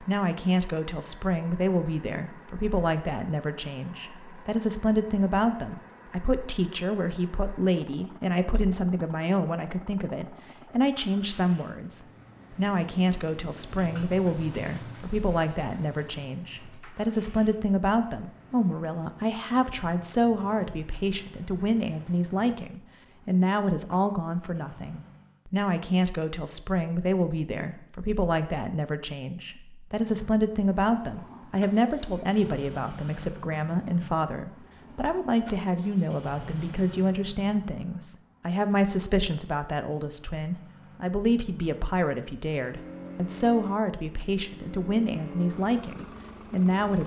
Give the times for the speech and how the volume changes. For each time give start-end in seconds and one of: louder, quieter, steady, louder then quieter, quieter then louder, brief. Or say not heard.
0.0-47.0 steady.